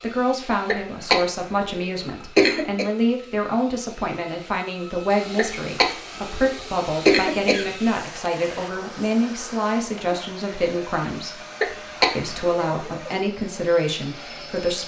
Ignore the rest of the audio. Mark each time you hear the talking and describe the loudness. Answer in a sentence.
You can hear the talking from 0.0 to 11.4 s, at a steady volume; and briefly from 12.2 to 14.8 s.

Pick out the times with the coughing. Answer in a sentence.
The coughing can be heard from 0.7 to 2.9 s, from 5.3 to 7.7 s and from 11.6 to 12.4 s.